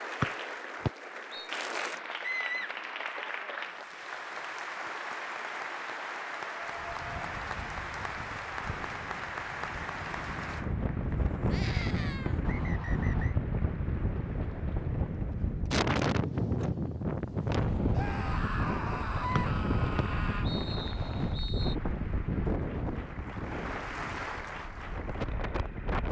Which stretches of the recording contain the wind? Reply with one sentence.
The wind can be heard from 6.6 to 26.0 s.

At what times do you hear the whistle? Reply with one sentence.
The whistle can be heard from 0.2 to 1.5 s, from 12.4 to 13.3 s and from 19.4 to 21.8 s.